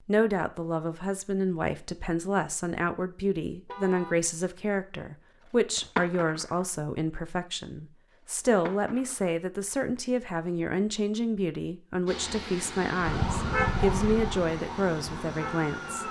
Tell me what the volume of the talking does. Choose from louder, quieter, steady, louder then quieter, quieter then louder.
steady.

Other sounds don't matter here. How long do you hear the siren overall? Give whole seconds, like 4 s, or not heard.
3 s.